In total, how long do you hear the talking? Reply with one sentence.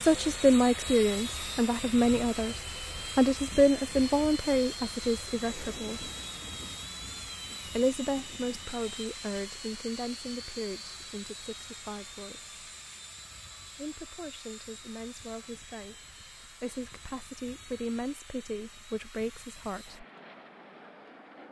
The talking can be heard for 17 seconds in total.